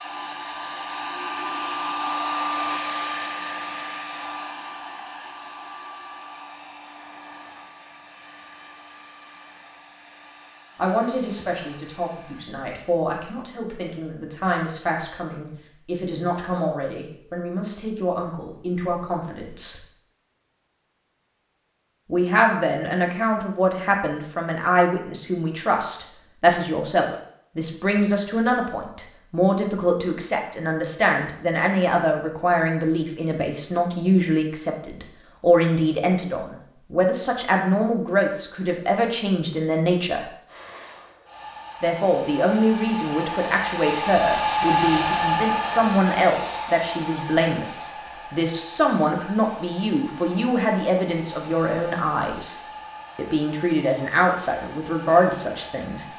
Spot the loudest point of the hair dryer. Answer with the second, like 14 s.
45 s.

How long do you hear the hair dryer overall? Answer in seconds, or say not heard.
28 s.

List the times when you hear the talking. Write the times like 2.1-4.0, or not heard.
10.8-19.8, 22.1-40.2, 41.8-56.0.